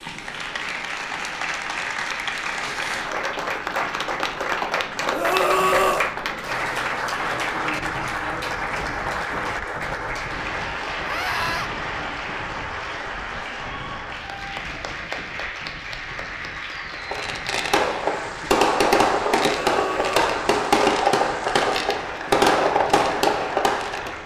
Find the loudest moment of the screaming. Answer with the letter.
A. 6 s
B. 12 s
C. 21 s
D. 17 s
A.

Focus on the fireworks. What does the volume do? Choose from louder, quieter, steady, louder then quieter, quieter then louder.
steady.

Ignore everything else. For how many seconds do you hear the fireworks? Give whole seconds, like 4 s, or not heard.
7 s.